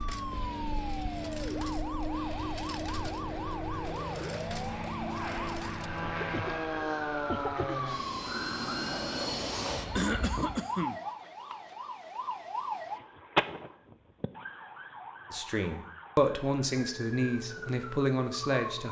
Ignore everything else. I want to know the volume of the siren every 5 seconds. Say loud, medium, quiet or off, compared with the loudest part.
loud, loud, loud, medium.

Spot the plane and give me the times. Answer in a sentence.
You can hear the plane from 0.0 to 10.6 s.